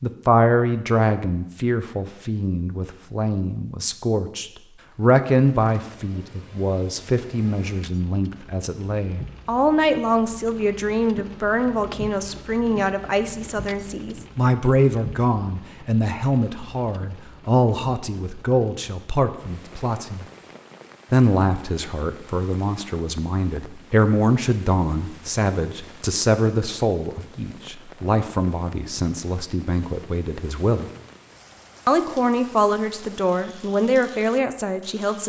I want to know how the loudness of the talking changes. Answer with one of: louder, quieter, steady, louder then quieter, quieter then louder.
steady.